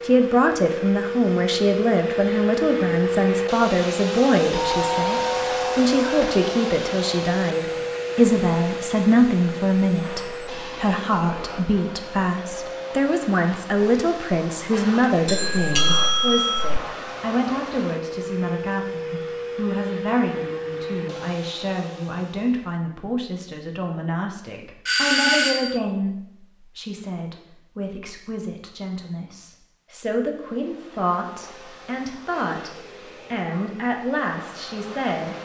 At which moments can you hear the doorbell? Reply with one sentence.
The doorbell can be heard from 4.5 to 6.5 s, from 15.2 to 16.8 s and from 24.9 to 25.8 s.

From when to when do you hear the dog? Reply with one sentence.
You can't hear the dog here.